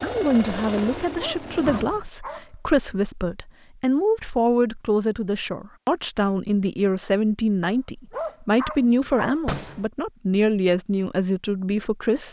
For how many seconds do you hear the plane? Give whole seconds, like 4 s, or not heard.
2 s.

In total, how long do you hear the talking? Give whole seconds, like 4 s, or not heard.
12 s.